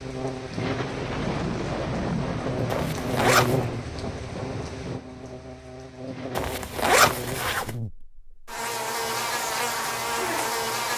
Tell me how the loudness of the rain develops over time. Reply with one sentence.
The volume of the rain goes down.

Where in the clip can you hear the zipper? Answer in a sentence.
The zipper can be heard from 2.7 to 3.6 s and from 6.3 to 7.8 s.